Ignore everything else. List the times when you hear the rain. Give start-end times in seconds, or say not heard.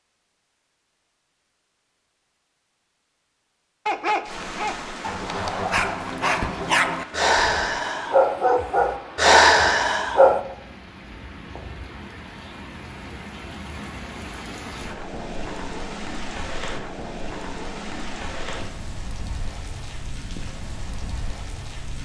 4.2-22.0.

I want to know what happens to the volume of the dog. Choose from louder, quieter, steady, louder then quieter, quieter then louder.
louder.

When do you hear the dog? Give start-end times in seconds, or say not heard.
3.9-10.4.